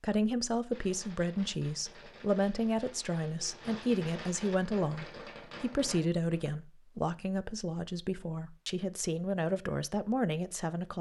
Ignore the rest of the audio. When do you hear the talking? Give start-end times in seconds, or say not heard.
0.0-10.9.